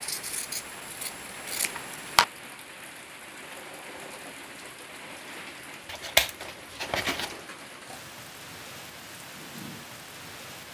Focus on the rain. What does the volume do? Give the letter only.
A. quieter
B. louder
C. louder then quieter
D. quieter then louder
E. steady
E.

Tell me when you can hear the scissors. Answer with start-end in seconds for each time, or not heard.
0.0-2.2, 5.8-7.3.